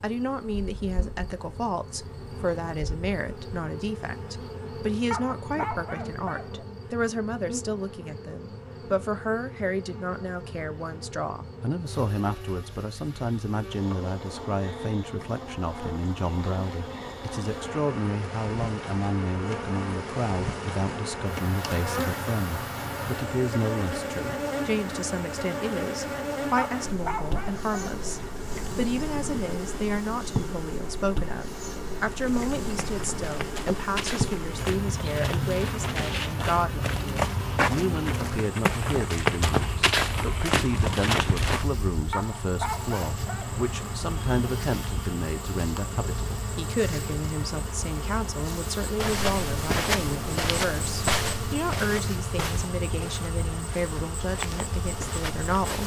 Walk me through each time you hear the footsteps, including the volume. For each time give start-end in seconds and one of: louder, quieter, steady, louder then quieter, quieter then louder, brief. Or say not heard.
32.3-41.6 louder
49.0-55.8 quieter then louder.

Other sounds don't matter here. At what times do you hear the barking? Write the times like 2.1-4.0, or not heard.
5.1-6.7, 26.6-28.1, 42.1-43.6.